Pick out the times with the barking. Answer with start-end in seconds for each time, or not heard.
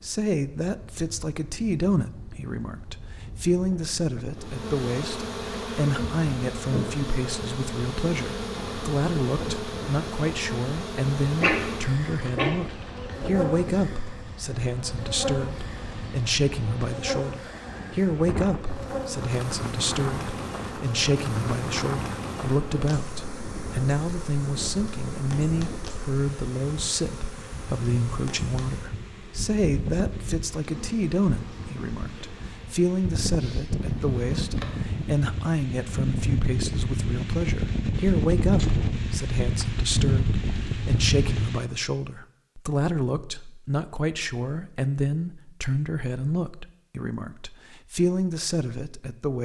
11.4-13.2.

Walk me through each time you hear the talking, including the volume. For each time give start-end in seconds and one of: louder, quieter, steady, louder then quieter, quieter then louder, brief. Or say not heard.
0.0-49.4 steady.